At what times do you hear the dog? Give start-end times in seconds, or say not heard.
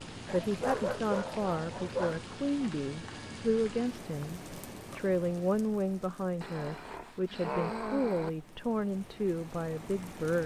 0.2-2.2, 6.4-8.3.